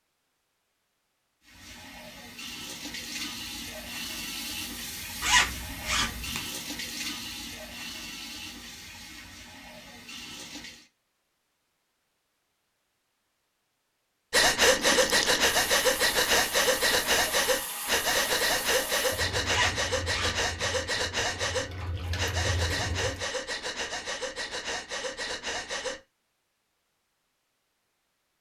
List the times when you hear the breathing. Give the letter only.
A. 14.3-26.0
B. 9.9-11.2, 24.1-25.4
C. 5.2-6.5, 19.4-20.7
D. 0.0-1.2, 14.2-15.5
A.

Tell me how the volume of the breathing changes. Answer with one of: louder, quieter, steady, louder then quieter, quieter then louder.
quieter.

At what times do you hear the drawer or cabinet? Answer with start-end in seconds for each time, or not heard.
not heard.